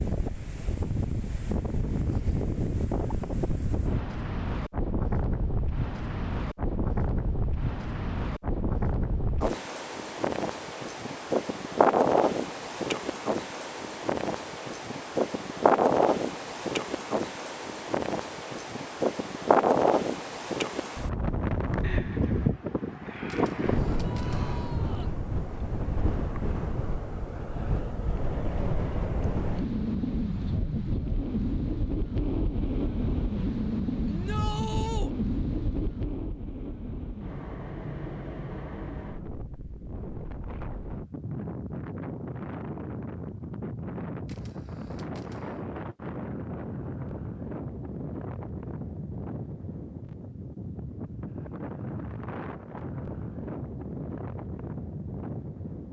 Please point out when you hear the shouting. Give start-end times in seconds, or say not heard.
23.9-25.1, 34.0-35.1.